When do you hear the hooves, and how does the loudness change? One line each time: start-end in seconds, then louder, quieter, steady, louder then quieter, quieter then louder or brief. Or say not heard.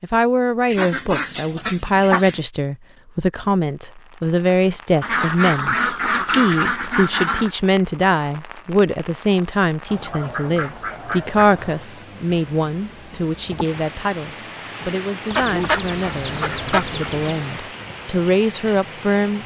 not heard.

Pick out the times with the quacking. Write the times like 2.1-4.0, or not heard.
0.7-2.4, 5.0-7.5, 9.8-11.4, 15.3-17.4.